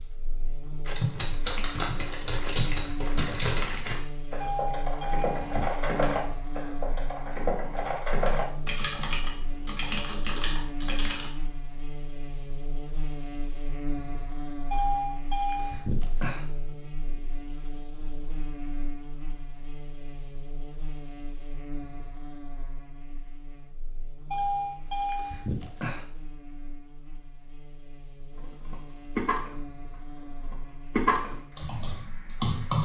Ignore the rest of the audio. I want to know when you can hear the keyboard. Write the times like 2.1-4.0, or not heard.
0.8-11.3, 28.4-32.8.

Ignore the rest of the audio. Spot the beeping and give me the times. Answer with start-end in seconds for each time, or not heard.
4.4-5.8, 14.7-16.4, 24.3-26.1.